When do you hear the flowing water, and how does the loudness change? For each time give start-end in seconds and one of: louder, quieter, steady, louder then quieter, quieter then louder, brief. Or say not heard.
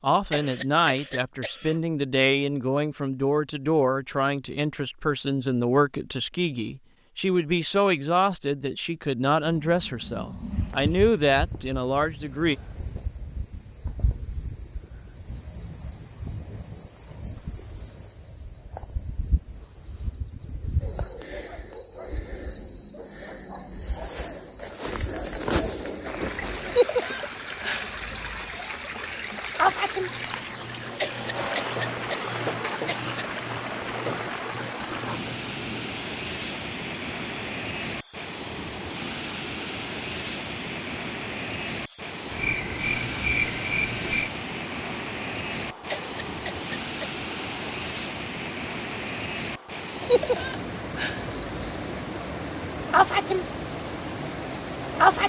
25.9-55.2 steady.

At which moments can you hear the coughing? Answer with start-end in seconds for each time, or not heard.
0.3-1.8, 30.9-33.2, 45.9-47.2.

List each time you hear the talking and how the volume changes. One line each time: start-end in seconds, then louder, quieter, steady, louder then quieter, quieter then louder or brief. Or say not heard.
0.0-12.6 steady.